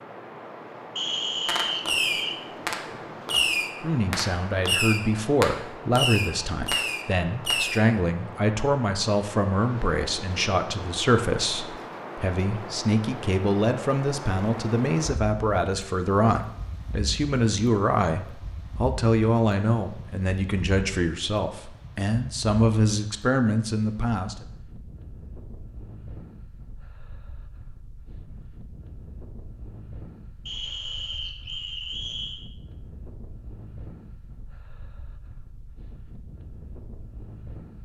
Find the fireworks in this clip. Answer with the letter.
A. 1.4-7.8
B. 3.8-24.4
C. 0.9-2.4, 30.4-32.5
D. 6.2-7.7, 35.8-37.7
A.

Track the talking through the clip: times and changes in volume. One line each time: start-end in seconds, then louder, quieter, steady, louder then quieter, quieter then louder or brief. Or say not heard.
3.8-24.4 steady.